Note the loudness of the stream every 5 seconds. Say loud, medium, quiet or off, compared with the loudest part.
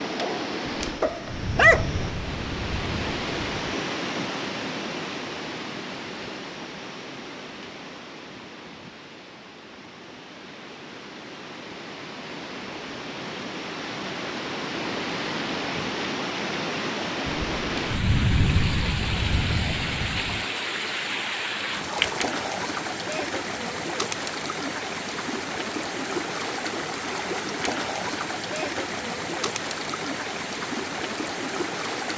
loud, medium, medium, loud, loud, loud, loud.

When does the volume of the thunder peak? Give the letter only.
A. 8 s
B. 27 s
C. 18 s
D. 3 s
C.